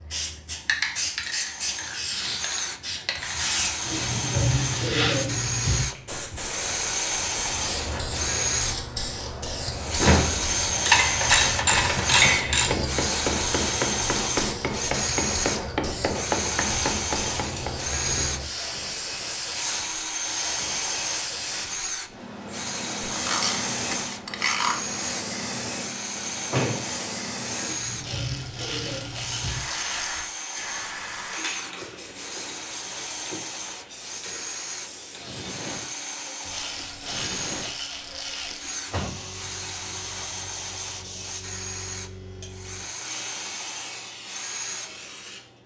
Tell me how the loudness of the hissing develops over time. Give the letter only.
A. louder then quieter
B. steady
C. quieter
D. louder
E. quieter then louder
C.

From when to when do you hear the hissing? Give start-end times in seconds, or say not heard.
0.0-45.6.